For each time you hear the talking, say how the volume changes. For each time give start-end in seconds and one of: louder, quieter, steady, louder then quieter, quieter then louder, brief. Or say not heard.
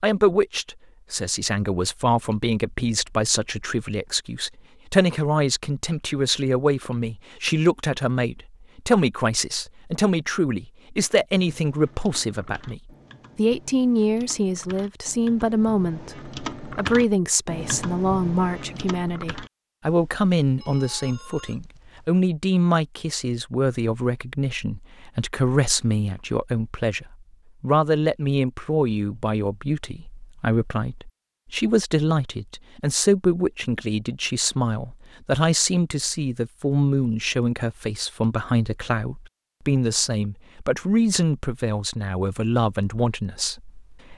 0.0-44.1 steady.